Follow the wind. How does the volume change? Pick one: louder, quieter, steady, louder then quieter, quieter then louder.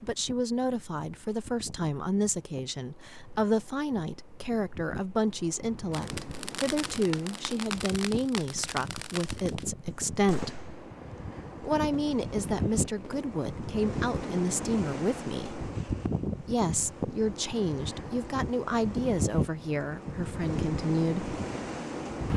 louder.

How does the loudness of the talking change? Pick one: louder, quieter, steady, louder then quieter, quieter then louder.
steady.